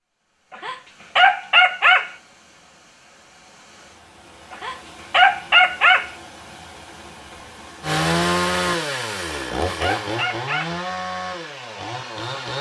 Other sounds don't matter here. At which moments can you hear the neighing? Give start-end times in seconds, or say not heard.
not heard.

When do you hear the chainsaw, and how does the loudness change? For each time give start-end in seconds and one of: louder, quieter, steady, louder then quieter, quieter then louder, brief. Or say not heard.
7.8-12.5 quieter.